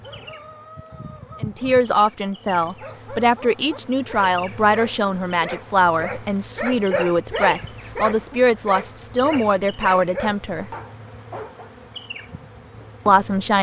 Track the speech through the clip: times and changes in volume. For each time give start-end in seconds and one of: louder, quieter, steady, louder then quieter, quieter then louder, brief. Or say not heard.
1.4-10.7 steady
13.1-13.5 brief.